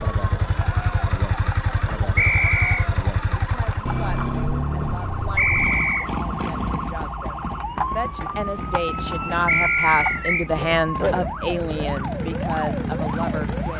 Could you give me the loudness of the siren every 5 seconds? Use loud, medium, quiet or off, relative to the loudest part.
medium, loud, loud.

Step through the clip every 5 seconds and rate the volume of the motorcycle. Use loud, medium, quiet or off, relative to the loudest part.
loud, medium, loud.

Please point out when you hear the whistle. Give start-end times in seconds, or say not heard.
2.1-2.9, 5.3-6.1, 9.4-10.5.